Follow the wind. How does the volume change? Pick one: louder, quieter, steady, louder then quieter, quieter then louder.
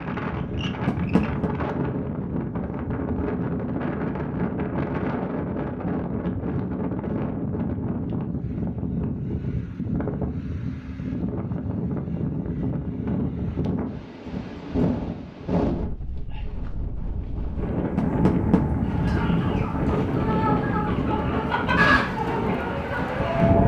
steady.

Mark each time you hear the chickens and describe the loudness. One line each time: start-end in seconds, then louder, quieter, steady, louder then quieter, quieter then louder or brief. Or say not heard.
18.8-23.6 louder then quieter.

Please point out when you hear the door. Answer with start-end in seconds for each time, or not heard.
0.8-1.5, 17.9-18.6.